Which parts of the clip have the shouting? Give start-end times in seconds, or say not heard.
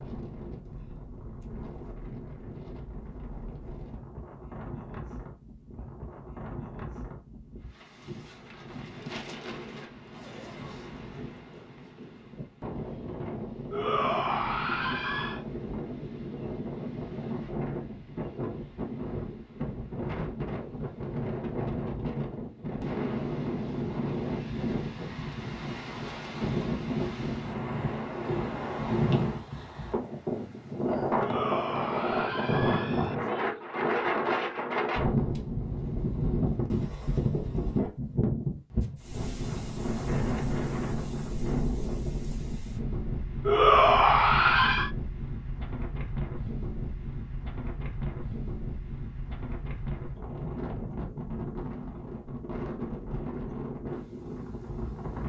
13.7-15.4, 31.1-33.1, 43.5-44.9.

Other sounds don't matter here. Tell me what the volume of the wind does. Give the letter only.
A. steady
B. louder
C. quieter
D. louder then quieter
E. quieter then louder
D.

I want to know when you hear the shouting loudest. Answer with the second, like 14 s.
44 s.